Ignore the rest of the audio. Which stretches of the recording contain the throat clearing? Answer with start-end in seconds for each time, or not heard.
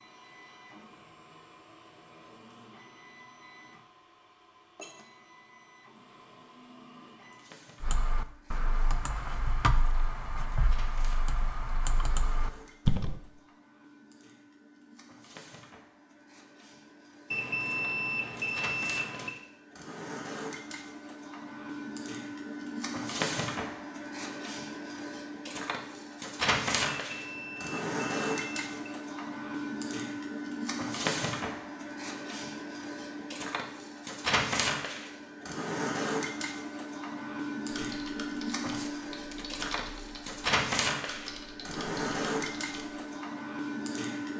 not heard.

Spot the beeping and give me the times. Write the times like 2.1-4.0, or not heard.
17.3-19.3, 26.9-28.9.